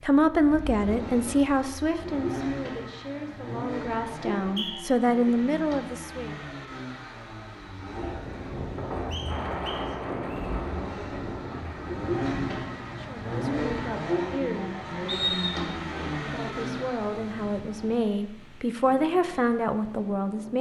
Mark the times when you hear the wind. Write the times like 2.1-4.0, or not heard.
8.1-20.5.